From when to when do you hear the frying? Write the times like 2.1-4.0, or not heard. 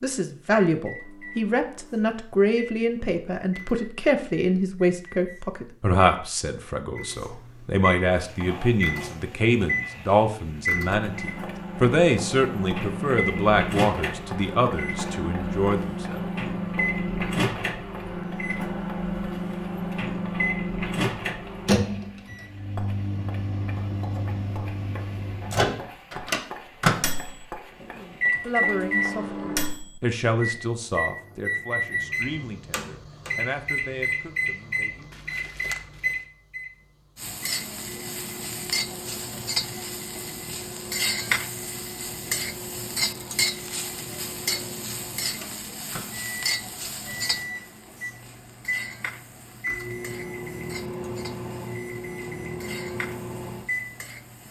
8.1-29.2, 37.1-54.4.